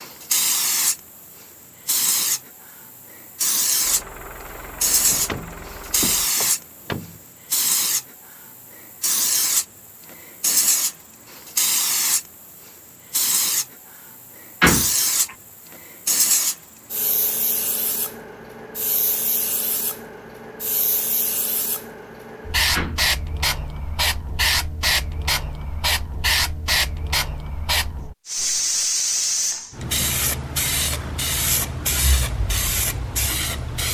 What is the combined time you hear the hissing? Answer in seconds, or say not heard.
34 s.